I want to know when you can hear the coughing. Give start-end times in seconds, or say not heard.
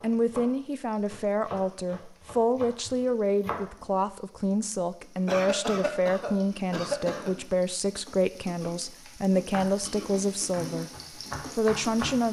5.2-7.3.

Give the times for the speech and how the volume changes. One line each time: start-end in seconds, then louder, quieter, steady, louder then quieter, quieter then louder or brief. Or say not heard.
0.0-10.9 steady
11.6-12.2 brief.